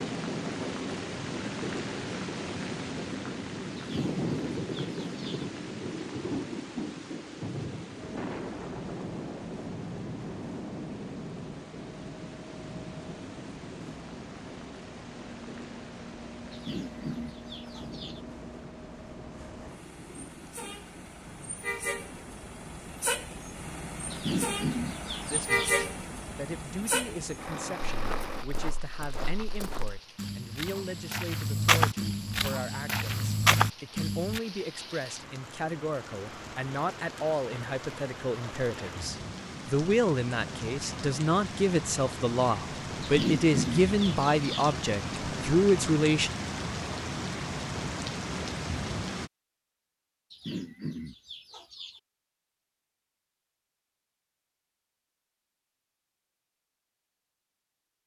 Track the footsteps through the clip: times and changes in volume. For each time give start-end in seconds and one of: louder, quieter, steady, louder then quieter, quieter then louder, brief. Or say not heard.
27.9-34.4 louder.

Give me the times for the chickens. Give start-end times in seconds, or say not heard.
3.8-5.5, 16.5-18.2, 24.1-25.8, 43.0-44.7, 50.3-52.0.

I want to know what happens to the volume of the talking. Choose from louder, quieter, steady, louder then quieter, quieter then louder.
louder.